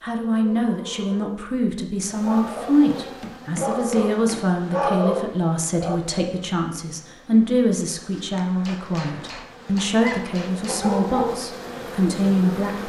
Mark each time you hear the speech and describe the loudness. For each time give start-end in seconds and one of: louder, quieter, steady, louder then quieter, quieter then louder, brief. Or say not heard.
0.0-12.8 steady.